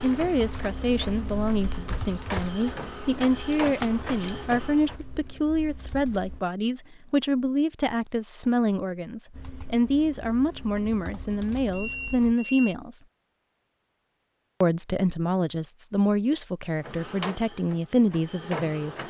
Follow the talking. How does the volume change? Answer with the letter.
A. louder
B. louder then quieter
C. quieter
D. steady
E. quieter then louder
D.